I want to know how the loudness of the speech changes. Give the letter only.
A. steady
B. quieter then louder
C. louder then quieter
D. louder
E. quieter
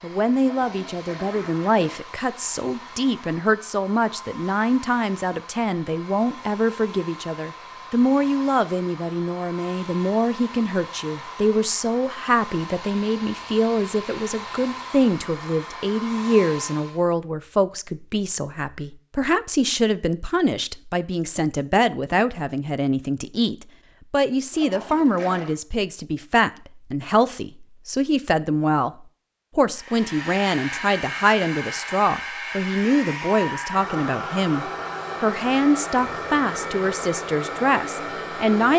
A.